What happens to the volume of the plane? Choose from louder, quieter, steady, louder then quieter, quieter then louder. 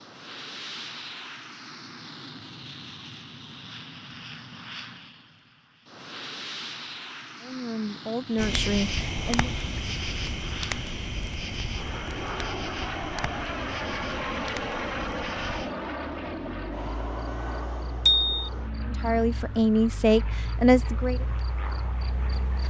louder then quieter.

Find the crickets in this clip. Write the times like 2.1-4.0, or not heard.
8.3-22.6.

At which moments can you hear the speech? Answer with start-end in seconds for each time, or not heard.
7.4-9.5, 18.9-21.2.